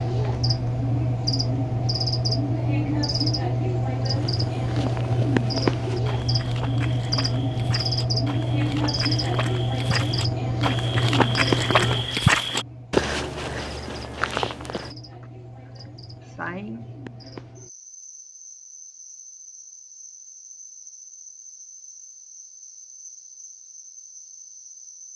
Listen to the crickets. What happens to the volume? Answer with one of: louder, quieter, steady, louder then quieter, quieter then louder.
quieter.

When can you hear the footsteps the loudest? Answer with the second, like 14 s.
12 s.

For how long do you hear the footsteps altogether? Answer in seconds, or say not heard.
11 s.